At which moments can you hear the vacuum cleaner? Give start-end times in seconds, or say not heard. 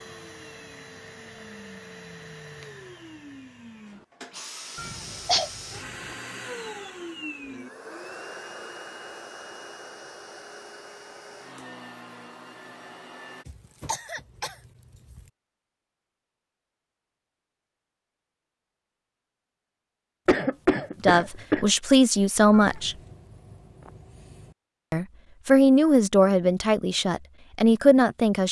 0.0-13.4.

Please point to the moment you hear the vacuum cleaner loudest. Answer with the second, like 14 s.
7 s.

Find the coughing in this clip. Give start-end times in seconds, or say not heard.
4.8-5.5, 13.4-15.2, 20.2-21.6.